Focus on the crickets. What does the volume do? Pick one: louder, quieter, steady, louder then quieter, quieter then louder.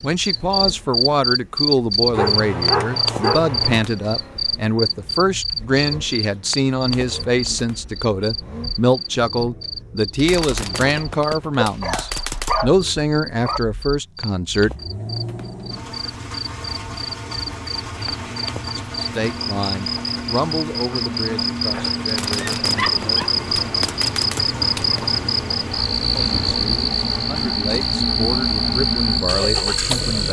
quieter then louder.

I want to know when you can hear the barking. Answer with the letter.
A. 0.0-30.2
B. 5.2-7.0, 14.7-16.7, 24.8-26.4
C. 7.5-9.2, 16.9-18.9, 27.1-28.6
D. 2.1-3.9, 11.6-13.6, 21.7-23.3
D.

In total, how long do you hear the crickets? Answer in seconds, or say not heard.
30 s.